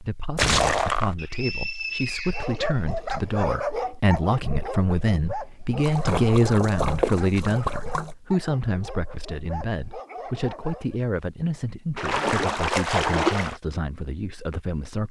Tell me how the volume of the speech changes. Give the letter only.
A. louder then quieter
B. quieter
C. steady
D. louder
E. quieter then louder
A.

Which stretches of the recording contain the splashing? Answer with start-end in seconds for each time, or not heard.
0.3-1.1, 5.8-8.2, 11.9-13.6.